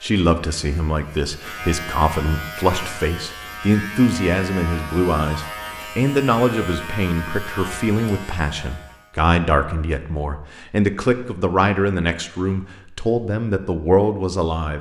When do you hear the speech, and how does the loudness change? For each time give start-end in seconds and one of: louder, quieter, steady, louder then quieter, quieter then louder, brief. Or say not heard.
0.0-14.7 steady.